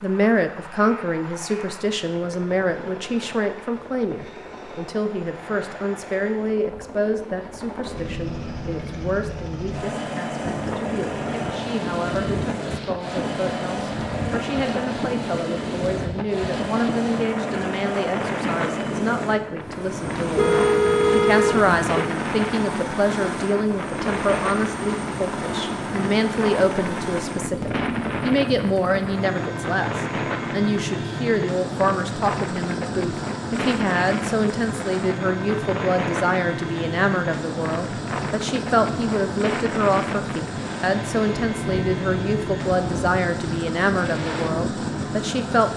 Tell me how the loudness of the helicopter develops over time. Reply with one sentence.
The loudness of the helicopter goes up.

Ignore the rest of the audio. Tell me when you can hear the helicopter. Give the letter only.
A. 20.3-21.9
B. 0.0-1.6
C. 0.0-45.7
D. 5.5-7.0
C.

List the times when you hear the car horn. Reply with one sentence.
The car horn can be heard from 20.3 to 21.9 s.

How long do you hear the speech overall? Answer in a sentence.
The speech can be heard for 46 seconds in total.